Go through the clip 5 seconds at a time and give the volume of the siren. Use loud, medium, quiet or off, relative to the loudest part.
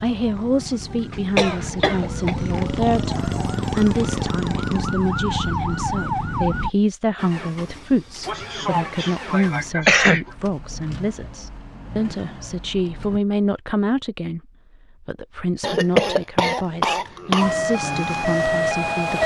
medium, loud, off, loud.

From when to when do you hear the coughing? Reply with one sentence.
The coughing can be heard from 1.1 to 2.4 s, from 8.2 to 10.2 s and from 15.6 to 17.5 s.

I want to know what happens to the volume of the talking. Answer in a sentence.
The volume of the talking stays about the same.